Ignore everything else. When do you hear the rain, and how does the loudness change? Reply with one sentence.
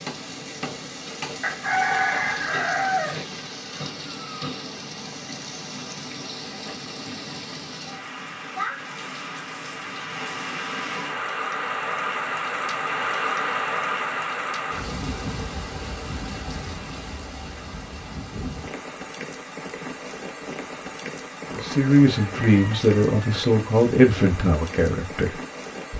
The rain can be heard from 0.0 to 25.9 s, getting louder then quieter.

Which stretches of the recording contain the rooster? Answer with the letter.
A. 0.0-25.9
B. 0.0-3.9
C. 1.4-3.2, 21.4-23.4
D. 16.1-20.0
C.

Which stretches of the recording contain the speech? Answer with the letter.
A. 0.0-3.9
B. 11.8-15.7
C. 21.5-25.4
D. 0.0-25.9
C.